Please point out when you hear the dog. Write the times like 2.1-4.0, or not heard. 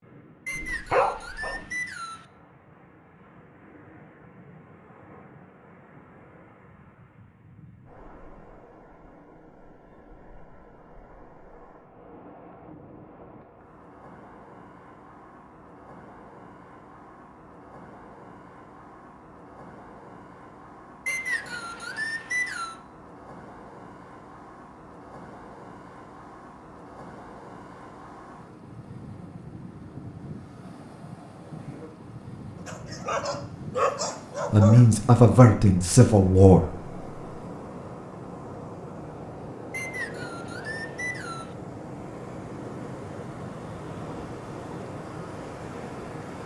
0.6-1.6, 32.6-34.9.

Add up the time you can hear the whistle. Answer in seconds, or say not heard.
5 s.